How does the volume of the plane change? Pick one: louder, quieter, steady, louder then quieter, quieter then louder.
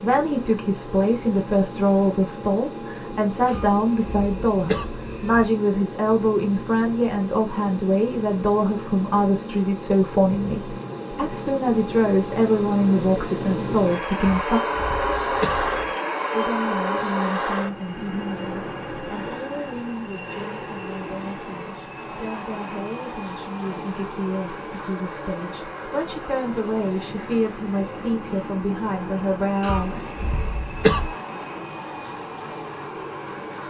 louder then quieter.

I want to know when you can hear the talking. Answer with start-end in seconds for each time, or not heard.
0.0-14.6, 16.3-30.0.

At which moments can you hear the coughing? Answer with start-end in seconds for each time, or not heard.
3.5-5.5, 14.2-15.9, 29.6-31.1.